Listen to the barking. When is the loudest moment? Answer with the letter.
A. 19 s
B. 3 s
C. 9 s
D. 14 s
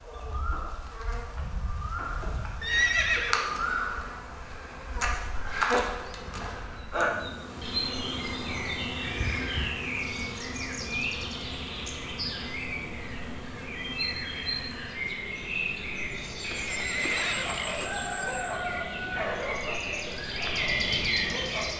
A.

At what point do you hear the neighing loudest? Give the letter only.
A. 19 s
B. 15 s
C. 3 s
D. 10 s
C.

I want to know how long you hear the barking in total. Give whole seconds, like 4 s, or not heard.
5 s.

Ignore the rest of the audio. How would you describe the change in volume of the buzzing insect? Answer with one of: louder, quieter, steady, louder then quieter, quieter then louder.
louder then quieter.